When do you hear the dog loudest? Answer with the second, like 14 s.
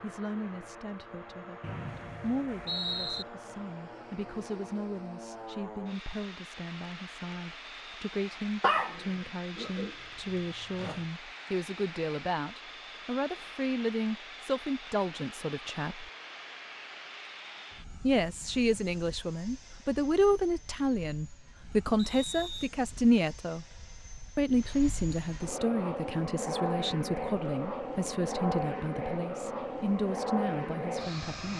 9 s.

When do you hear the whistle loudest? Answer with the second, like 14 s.
3 s.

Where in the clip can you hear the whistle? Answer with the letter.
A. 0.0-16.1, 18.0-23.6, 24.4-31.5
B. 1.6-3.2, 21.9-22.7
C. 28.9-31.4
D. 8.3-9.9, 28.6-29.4
B.